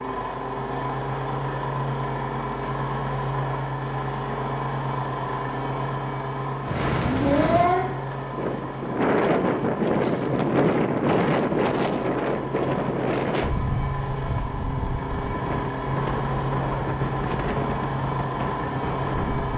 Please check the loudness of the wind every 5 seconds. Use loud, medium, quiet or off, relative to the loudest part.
off, loud, loud, medium.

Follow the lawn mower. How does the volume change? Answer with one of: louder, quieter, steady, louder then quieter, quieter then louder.
quieter then louder.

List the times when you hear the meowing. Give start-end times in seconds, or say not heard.
6.8-7.9.